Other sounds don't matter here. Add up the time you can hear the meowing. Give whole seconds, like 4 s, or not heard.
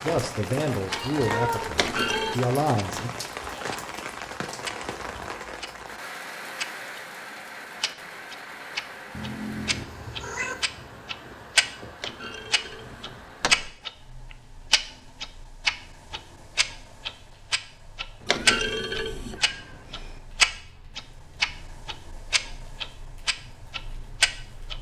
5 s.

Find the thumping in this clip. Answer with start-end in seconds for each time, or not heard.
1.8-2.5, 12.0-13.8, 18.2-19.4.